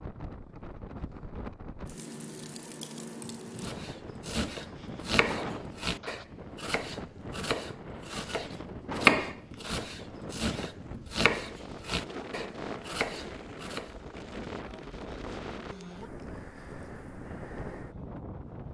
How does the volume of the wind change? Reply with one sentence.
The volume of the wind stays about the same.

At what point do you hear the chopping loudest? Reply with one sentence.
The volume of the chopping peaks at 9 seconds.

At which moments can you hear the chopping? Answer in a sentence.
You can hear the chopping from 3.6 to 13.9 s.